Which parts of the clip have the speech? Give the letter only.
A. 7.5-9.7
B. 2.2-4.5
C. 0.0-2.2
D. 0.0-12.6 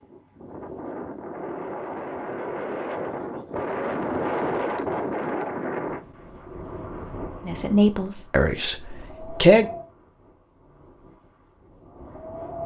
A.